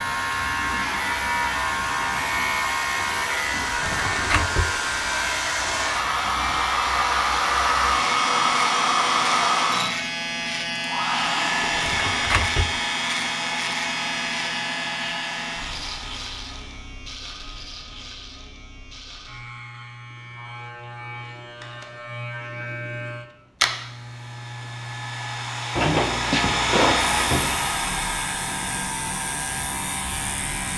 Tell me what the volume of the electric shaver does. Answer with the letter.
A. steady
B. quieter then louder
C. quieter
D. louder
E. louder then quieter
C.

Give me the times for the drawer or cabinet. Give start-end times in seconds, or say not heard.
3.6-4.8, 11.7-12.8, 25.8-27.6.